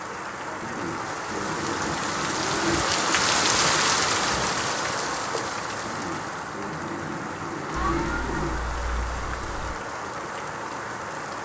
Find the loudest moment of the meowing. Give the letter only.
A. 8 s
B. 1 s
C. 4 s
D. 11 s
A.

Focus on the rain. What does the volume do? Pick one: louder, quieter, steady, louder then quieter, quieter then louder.
louder then quieter.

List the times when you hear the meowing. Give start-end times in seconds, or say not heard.
7.7-9.8.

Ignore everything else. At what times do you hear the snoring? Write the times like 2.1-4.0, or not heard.
0.6-2.8, 5.8-8.6.